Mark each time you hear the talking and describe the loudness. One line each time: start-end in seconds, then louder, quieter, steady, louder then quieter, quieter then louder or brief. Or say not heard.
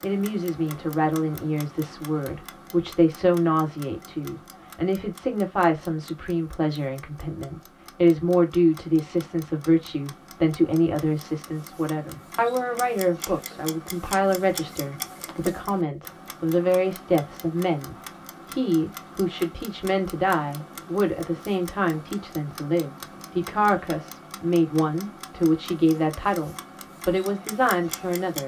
0.0-28.4 steady.